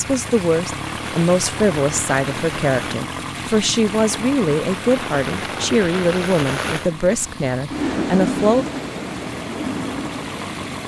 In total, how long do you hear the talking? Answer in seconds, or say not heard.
9 s.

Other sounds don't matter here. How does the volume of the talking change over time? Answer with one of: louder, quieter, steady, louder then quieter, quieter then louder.
steady.